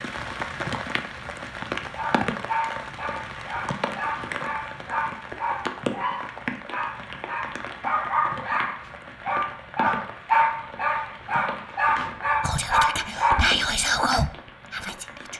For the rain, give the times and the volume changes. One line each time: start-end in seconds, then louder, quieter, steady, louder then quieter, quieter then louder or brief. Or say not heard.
0.0-15.3 quieter.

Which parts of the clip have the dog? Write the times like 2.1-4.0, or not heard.
1.9-13.6.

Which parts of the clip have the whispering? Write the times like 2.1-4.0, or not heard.
12.4-15.3.